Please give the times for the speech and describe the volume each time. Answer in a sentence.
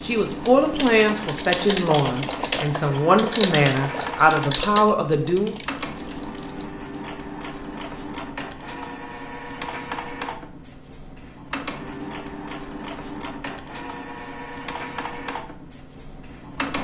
The speech can be heard from 0.0 to 5.5 s, at a steady volume.